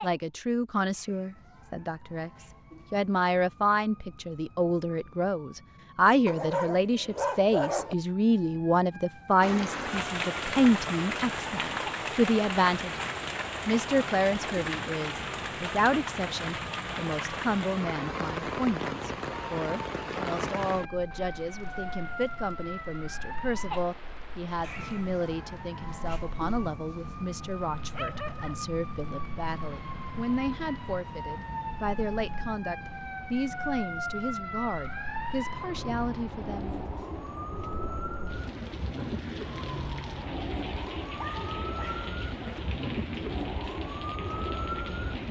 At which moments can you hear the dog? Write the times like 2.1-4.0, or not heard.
6.2-8.0, 27.9-28.6, 41.1-42.8.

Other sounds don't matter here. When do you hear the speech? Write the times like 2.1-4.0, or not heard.
0.0-13.0, 13.7-36.8.